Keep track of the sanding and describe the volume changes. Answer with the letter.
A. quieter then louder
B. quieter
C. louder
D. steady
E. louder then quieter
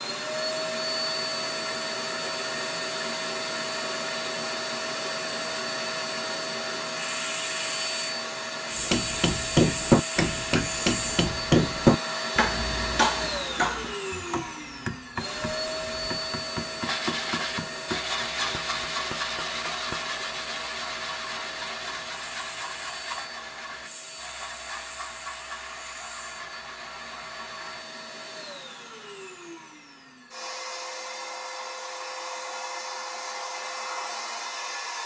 B.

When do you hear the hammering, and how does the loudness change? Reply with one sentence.
You can hear the hammering from 8.8 to 20.1 s, getting quieter.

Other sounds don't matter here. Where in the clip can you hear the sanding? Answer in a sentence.
You can hear the sanding from 16.8 to 27.9 s.